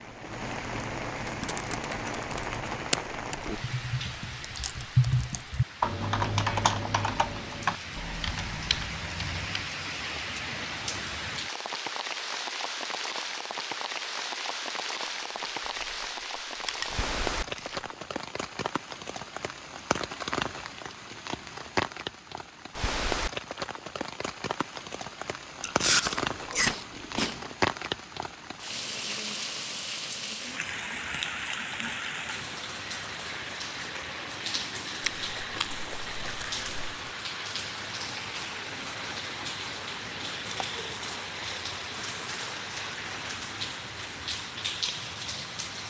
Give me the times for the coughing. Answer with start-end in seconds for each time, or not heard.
not heard.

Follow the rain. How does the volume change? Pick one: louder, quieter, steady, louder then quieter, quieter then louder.
steady.